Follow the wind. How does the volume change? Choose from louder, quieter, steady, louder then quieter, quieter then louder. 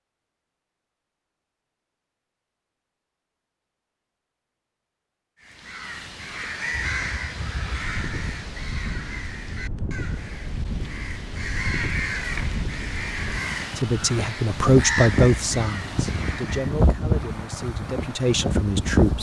louder.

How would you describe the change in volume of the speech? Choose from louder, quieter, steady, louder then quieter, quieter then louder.
quieter then louder.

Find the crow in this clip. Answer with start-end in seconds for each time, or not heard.
5.4-16.8.